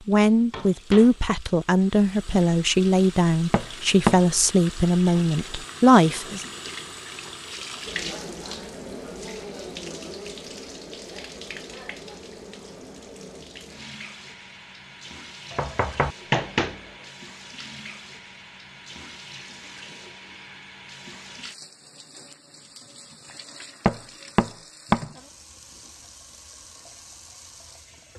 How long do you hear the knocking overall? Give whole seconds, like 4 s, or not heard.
3 s.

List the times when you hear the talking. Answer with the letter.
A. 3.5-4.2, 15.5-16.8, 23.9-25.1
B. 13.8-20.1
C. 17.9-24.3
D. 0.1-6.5
D.